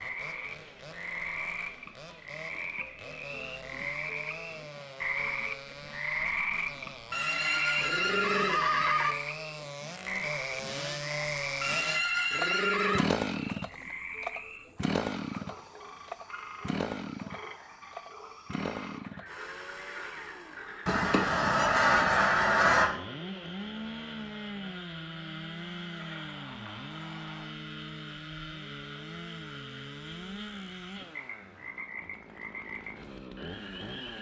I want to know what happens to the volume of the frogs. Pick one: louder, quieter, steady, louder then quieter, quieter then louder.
quieter.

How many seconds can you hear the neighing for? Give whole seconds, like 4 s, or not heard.
5 s.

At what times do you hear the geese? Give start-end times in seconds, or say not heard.
20.9-22.9.